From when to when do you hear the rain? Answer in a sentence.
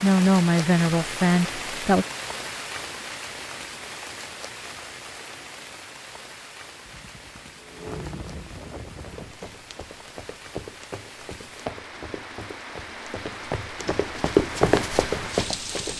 You can hear the rain from 0.0 to 15.9 s.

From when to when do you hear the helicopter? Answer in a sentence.
The helicopter can be heard from 6.8 to 9.4 s.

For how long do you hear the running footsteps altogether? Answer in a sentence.
The running footsteps can be heard for 7 seconds in total.